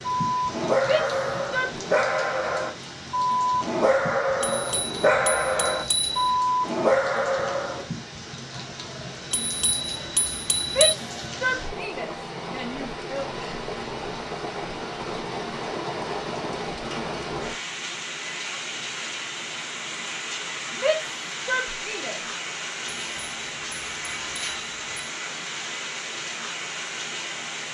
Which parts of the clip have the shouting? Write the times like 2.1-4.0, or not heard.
0.8-1.6, 10.7-13.2, 20.8-22.2.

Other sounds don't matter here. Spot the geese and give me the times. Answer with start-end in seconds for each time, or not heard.
not heard.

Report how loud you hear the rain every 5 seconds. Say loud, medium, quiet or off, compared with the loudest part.
medium, medium, loud, loud, loud, loud.